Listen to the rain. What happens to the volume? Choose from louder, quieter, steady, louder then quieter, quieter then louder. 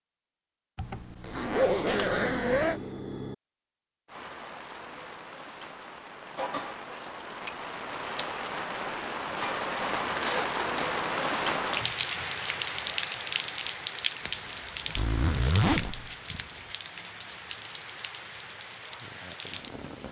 louder then quieter.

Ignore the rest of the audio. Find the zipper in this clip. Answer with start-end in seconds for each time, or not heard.
0.8-2.8, 9.6-11.0, 14.9-16.1.